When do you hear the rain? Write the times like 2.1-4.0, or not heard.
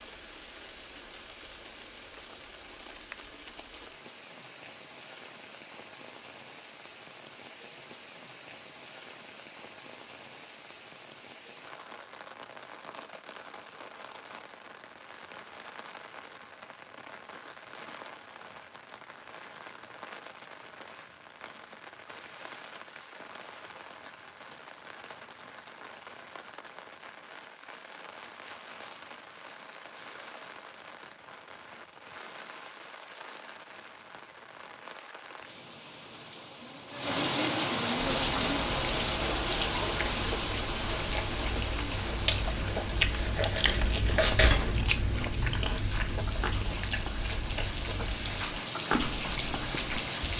0.0-50.3.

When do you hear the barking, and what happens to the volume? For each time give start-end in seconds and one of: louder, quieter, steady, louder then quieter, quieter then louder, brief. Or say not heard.
not heard.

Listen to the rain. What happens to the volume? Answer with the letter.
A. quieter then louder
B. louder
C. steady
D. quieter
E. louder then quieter
B.